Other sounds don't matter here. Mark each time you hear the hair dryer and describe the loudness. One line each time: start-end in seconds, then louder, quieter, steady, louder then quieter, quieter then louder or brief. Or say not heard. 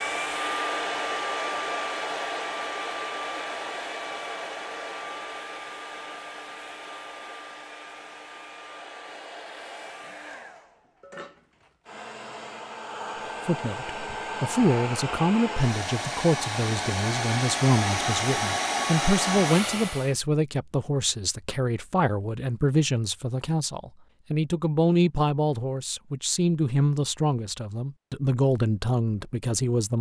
0.0-20.1 quieter then louder.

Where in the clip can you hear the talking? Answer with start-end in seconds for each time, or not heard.
13.4-29.9.